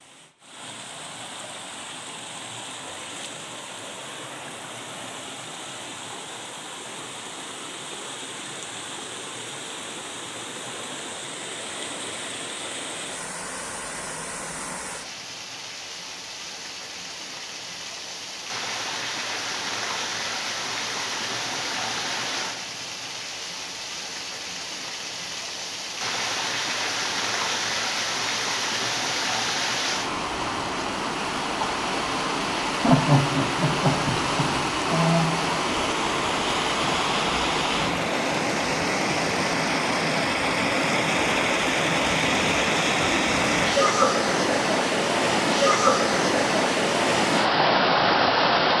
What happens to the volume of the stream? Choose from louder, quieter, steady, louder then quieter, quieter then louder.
louder.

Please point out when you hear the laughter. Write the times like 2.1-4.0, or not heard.
32.8-35.2.